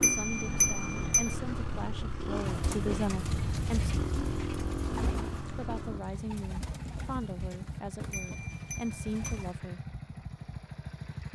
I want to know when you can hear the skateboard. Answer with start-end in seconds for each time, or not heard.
not heard.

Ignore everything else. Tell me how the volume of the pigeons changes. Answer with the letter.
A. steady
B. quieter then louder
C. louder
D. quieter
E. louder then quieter
D.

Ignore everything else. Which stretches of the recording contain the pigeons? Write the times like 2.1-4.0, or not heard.
2.4-9.6.